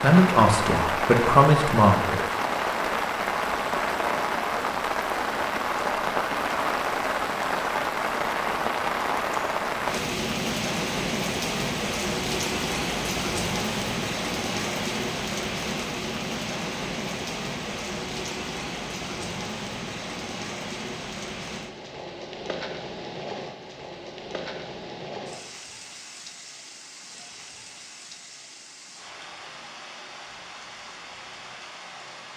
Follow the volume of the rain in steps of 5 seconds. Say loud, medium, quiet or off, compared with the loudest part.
loud, loud, loud, medium, medium, quiet, quiet.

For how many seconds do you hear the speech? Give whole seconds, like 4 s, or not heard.
2 s.